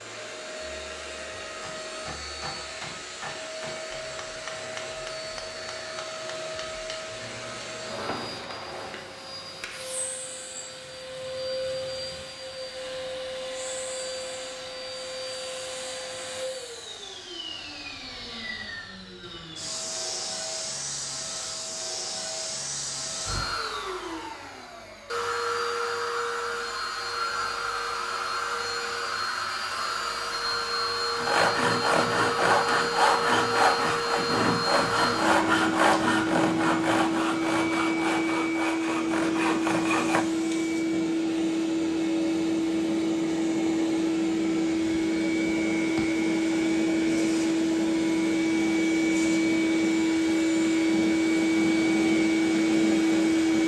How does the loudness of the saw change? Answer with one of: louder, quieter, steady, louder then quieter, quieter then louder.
quieter.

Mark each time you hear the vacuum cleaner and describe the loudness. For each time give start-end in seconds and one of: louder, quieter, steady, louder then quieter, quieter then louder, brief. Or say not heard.
0.0-53.6 louder.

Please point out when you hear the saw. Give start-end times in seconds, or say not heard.
31.1-40.2.